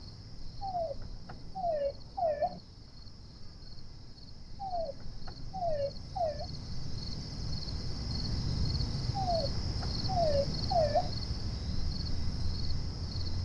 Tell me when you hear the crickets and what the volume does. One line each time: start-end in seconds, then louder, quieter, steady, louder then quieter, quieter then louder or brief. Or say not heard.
0.0-13.3 louder.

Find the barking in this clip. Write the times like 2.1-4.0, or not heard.
0.6-2.6, 4.6-6.5, 9.2-11.2.